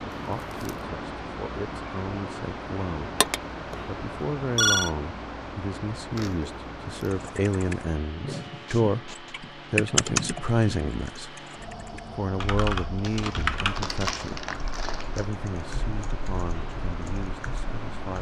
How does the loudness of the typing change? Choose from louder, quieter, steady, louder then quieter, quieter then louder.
louder then quieter.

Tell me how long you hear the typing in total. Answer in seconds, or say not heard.
11 s.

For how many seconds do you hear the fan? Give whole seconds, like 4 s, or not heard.
18 s.